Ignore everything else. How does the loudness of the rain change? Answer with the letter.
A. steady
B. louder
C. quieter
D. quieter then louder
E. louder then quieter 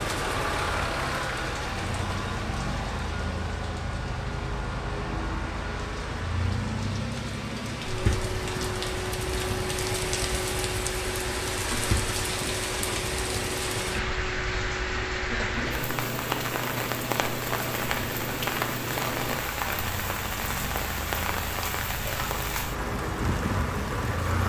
B.